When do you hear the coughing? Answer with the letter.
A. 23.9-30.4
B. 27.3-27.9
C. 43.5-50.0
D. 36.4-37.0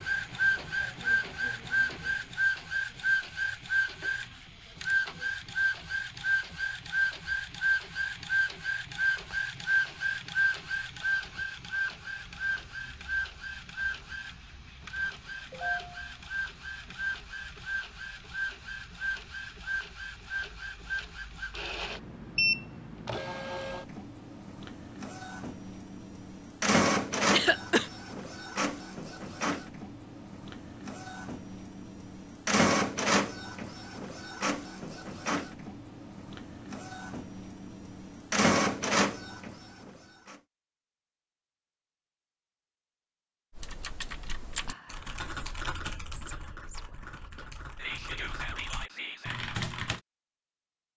B.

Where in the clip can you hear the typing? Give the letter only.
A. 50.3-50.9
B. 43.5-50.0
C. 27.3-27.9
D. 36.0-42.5
B.